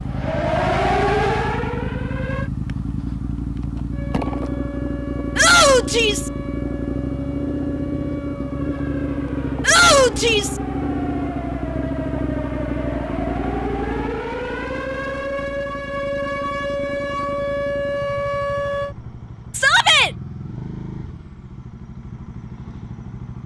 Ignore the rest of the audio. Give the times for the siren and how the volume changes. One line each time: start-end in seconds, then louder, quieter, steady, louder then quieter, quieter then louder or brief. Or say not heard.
0.1-2.5 brief
3.9-18.9 louder.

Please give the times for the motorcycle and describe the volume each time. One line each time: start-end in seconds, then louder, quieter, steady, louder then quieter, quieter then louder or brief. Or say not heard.
0.0-23.4 quieter.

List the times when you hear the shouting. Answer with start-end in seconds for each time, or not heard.
5.3-6.3, 9.6-10.6, 19.5-20.1.